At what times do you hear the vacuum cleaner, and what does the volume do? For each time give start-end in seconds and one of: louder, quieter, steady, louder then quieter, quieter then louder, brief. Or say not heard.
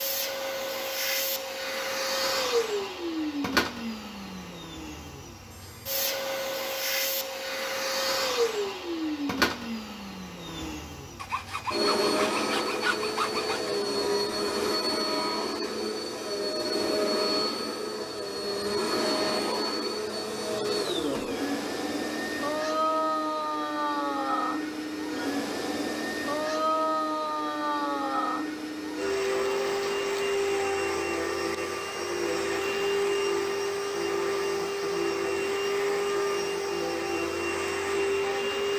0.0-38.7 steady.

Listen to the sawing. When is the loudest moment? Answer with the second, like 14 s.
13 s.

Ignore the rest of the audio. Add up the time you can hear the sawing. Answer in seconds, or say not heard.
3 s.